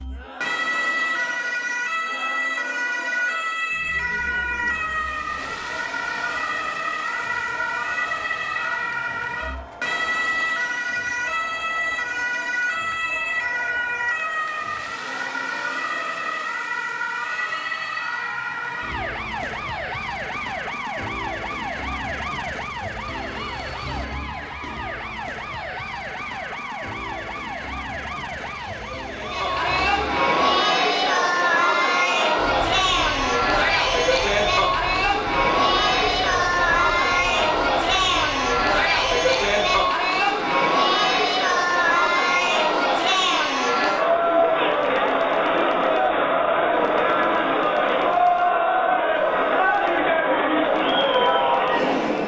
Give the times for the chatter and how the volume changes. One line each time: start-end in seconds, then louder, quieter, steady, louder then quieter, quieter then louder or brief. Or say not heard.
0.0-52.2 louder.